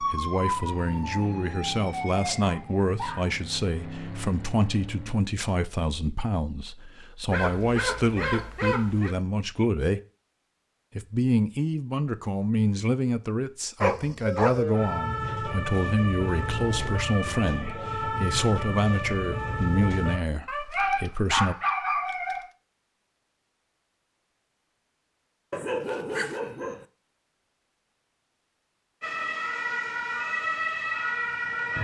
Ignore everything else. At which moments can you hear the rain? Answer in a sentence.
You can't hear the rain here.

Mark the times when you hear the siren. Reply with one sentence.
The siren can be heard from 0.0 to 3.2 s, from 14.2 to 20.2 s and from 29.0 to 31.7 s.